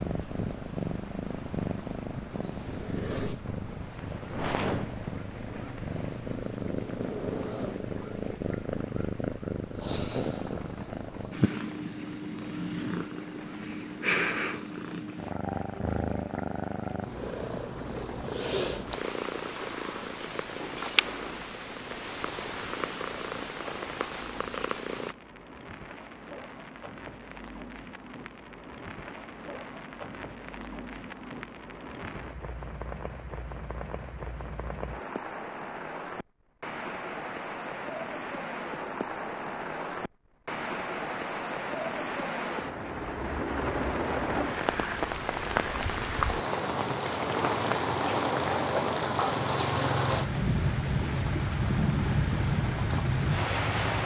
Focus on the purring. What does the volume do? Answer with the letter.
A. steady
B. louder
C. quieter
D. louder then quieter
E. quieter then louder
A.